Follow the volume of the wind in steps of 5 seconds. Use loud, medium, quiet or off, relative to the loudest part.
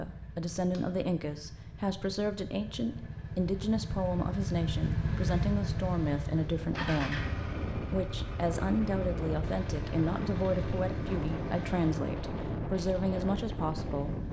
off, loud, loud.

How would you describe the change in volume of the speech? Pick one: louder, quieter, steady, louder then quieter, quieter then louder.
steady.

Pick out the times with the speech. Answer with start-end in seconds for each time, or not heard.
0.0-14.2.